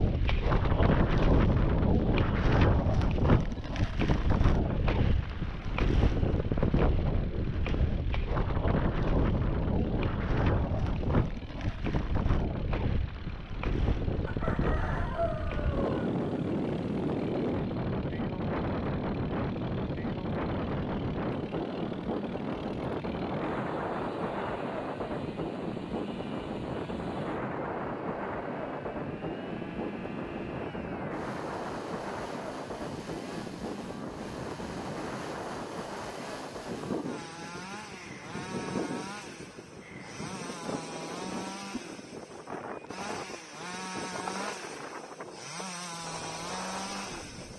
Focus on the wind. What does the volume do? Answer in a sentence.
The loudness of the wind goes down.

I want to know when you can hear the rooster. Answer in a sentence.
You can hear the rooster from 14.2 to 16.1 s.